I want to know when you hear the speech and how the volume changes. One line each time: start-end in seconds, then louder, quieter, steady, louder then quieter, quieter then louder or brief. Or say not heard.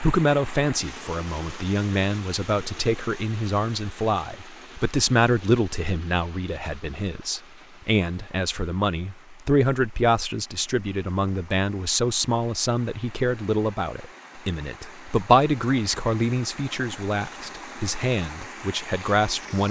0.0-19.6 steady.